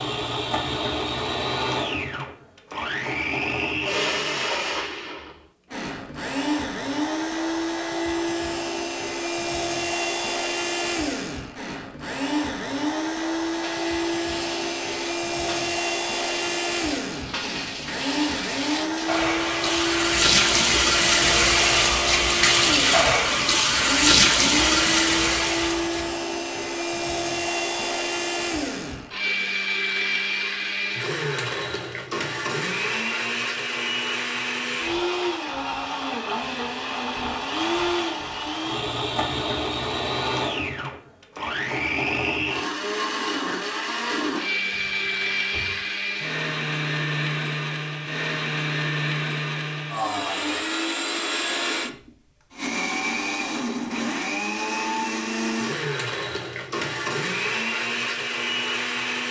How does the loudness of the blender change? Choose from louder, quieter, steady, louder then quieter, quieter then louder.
steady.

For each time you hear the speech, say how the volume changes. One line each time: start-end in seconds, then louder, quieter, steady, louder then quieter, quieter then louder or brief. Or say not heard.
not heard.